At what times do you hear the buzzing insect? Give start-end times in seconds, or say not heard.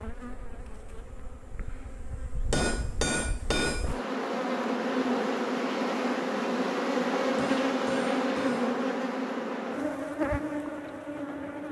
0.0-11.6.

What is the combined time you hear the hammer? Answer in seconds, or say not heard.
3 s.